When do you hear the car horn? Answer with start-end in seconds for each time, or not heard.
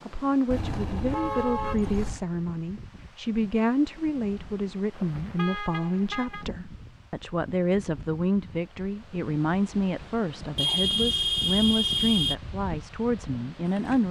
0.5-2.2, 5.0-6.5, 10.6-12.3.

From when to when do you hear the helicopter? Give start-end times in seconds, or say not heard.
not heard.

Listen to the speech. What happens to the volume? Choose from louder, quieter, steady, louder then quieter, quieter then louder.
steady.